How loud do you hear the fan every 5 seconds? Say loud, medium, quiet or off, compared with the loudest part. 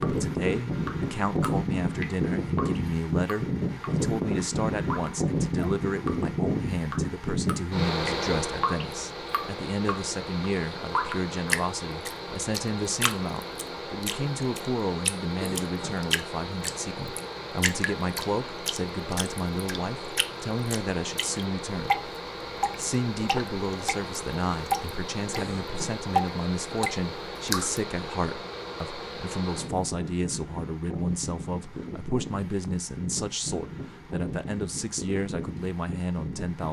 loud, loud, medium, medium, medium, medium, medium, medium.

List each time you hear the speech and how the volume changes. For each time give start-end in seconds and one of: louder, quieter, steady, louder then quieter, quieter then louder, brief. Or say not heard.
0.0-22.0 steady
22.8-36.6 steady.